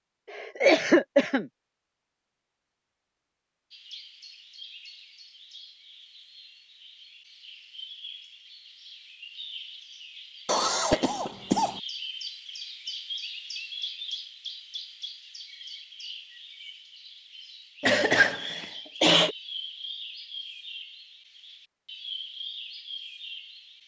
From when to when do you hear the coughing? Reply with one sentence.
You can hear the coughing from 0.3 to 1.4 s, from 10.4 to 11.8 s and from 17.8 to 19.4 s.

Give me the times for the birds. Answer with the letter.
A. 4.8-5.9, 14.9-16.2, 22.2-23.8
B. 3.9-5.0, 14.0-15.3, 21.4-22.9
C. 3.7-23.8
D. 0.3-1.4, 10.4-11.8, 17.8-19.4
C.